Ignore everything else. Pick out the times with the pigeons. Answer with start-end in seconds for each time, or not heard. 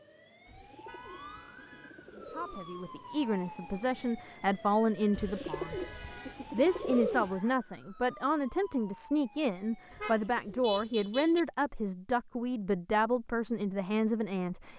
0.5-2.8, 5.1-7.4, 9.9-11.5.